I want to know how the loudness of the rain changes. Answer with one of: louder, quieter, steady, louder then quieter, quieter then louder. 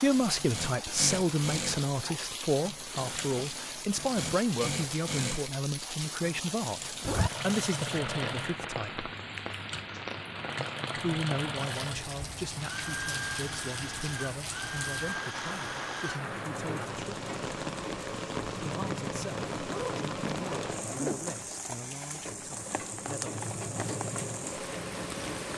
steady.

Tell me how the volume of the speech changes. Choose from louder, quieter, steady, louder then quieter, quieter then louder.
quieter.